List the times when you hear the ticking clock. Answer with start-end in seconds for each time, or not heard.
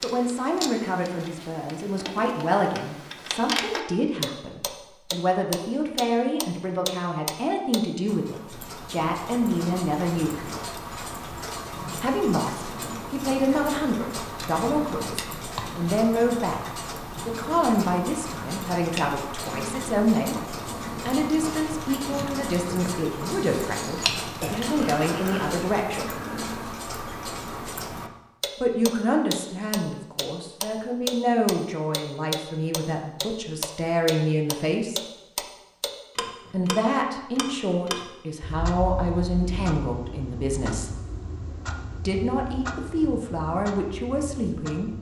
0.0-44.9.